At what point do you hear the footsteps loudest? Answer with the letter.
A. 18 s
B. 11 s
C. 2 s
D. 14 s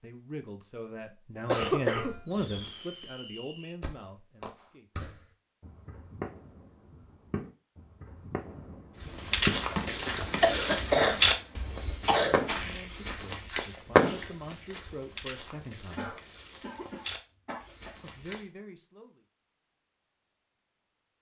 B.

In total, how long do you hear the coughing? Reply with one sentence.
You can hear the coughing for 5 seconds altogether.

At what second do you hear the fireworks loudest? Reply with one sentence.
The volume of the fireworks peaks at 14 seconds.